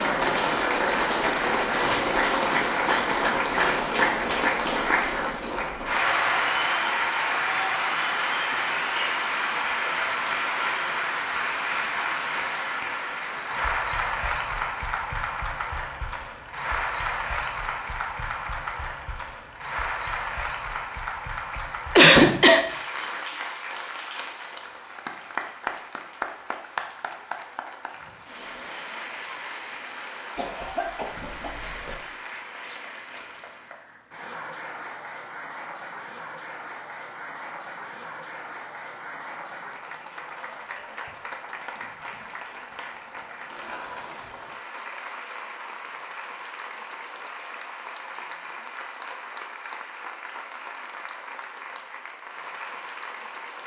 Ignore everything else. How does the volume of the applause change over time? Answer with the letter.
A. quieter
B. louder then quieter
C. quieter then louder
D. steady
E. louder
A.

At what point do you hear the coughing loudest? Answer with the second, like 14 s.
22 s.